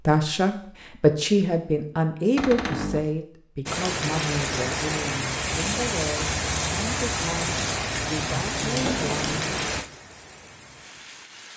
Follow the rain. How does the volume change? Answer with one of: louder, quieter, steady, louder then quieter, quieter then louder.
quieter.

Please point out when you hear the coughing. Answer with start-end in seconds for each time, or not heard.
not heard.